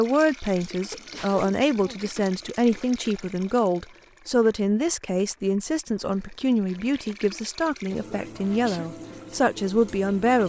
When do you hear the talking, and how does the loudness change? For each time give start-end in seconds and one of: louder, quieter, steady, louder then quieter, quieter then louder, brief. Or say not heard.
0.0-10.4 steady.